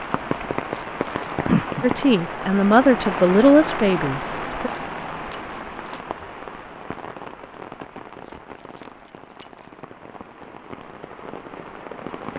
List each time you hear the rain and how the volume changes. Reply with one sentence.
The rain can be heard from 0.0 to 12.3 s, getting quieter.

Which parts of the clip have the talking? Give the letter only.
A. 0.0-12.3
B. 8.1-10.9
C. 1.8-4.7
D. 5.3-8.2
C.